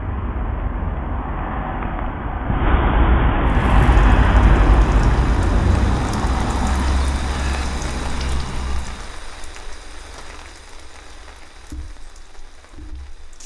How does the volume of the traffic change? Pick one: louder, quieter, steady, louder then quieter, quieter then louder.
louder then quieter.